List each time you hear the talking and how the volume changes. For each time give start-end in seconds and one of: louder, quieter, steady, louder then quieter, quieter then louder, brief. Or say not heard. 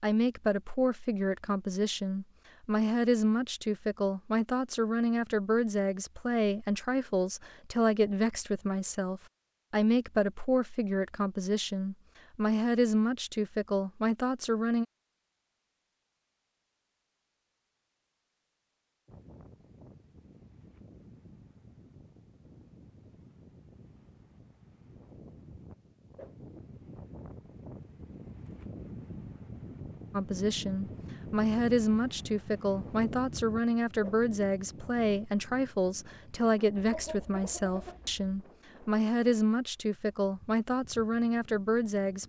0.0-14.8 steady
30.1-42.2 steady.